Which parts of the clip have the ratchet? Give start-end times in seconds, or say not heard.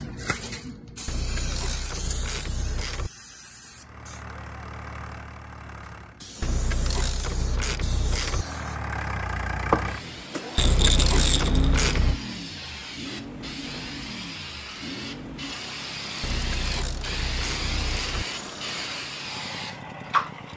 1.1-3.1, 6.4-8.4, 10.6-12.2, 16.2-18.2.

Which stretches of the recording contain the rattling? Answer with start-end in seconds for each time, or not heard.
10.6-11.8.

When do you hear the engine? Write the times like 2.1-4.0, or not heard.
3.6-6.3, 8.3-20.5.